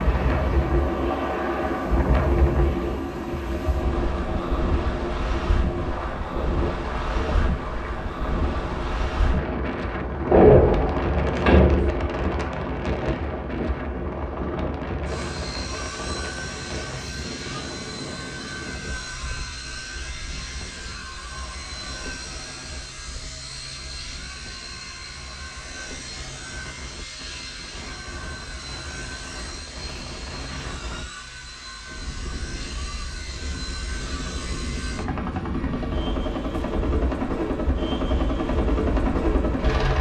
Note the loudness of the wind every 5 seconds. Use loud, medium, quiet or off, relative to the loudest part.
loud, loud, loud, medium, quiet, quiet, medium, medium.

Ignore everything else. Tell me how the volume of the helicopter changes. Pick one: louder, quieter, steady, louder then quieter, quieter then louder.
quieter then louder.